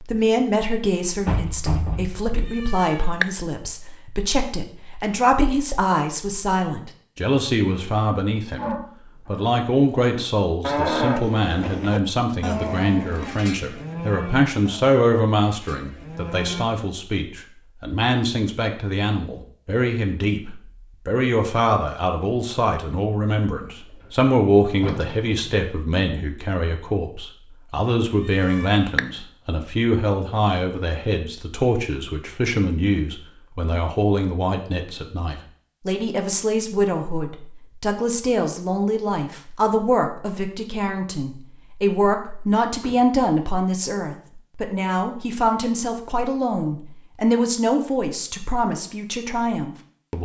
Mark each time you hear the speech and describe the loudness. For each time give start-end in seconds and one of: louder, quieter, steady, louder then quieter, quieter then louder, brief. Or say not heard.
0.0-50.2 steady.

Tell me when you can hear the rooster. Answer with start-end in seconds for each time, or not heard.
not heard.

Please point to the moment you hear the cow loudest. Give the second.
11 s.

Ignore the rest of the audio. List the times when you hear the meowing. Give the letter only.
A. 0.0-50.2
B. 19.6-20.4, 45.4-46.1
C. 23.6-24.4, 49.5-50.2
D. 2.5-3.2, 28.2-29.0
D.